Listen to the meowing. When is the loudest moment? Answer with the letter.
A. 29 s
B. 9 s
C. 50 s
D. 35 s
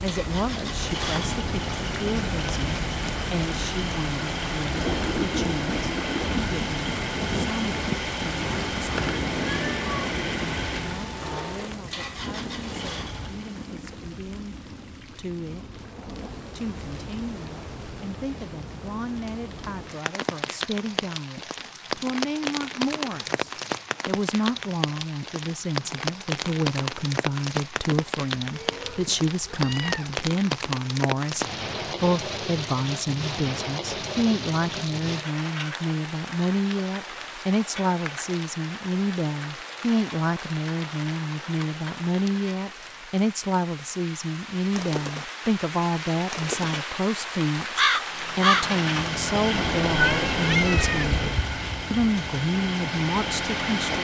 C.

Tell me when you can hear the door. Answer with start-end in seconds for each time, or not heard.
not heard.